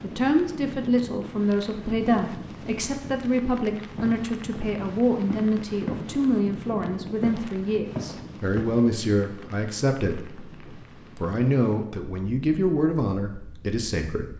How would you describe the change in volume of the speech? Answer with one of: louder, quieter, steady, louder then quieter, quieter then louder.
steady.